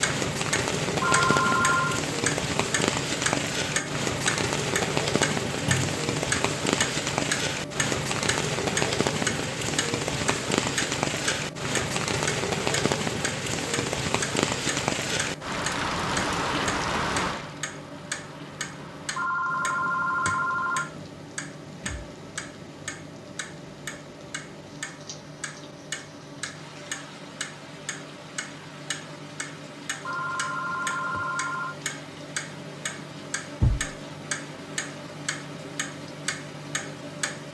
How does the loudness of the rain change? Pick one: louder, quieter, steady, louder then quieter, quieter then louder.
quieter.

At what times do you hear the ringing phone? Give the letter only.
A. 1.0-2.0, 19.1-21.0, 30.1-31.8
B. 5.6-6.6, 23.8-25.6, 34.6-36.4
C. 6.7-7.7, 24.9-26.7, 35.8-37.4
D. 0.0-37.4
A.